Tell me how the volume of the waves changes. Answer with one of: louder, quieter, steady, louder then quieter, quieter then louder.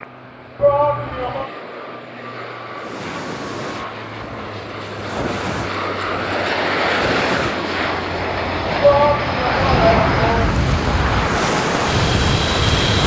louder.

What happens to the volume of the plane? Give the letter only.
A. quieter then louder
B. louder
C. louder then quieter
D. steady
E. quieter
B.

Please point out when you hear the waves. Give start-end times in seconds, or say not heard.
2.8-13.0.